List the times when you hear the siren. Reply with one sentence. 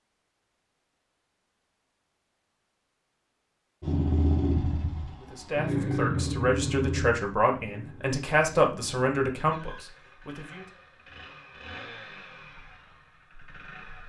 You can't hear the siren here.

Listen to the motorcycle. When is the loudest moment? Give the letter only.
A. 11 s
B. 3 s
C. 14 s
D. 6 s
D.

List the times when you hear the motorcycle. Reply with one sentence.
The motorcycle can be heard from 3.8 to 14.0 s.